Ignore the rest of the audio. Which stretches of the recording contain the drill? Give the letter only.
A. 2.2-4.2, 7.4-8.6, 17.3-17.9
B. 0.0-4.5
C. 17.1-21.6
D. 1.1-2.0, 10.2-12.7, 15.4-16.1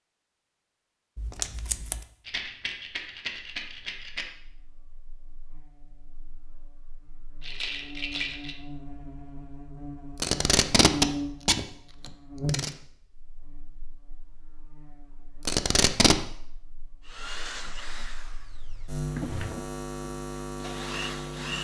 C.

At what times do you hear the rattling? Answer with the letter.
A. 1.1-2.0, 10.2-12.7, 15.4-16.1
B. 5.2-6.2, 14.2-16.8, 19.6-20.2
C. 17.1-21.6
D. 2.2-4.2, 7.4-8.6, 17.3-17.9
D.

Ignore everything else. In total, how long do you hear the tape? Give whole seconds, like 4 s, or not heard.
4 s.